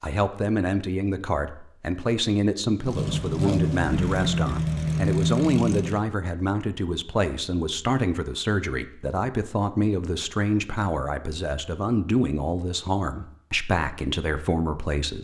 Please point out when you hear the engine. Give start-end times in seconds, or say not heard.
2.8-6.0.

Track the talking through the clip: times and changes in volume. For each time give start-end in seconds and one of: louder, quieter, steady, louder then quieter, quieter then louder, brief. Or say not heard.
0.0-15.2 steady.